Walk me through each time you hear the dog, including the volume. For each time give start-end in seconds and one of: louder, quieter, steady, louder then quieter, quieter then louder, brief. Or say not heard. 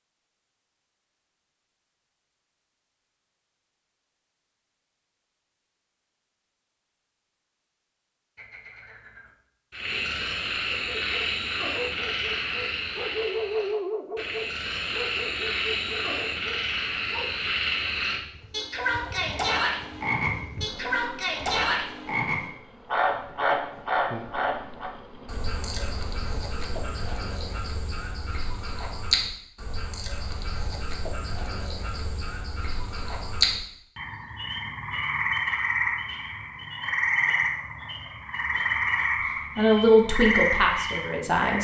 10.7-17.6 louder then quieter.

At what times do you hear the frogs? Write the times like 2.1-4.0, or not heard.
8.3-41.5.